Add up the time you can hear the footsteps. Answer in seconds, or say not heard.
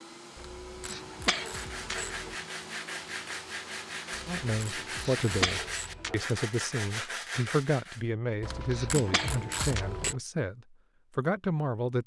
not heard.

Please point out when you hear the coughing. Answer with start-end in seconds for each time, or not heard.
0.8-2.3, 5.0-6.5, 8.7-10.2.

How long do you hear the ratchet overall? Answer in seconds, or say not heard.
6 s.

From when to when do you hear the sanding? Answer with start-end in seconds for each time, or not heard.
1.4-8.0.